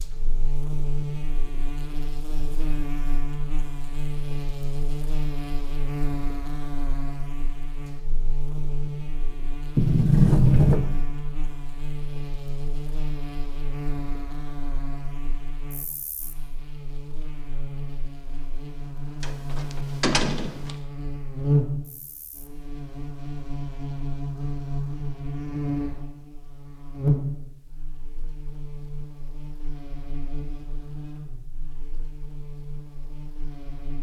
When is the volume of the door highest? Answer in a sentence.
The loudest moment of the door is at 10 seconds.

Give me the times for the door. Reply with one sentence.
You can hear the door from 9.8 to 10.8 s and from 19.2 to 20.7 s.